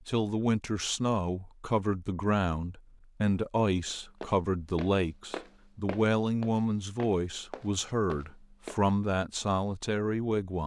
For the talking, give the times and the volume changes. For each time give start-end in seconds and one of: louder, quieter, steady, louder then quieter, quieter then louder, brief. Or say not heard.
0.1-10.6 steady.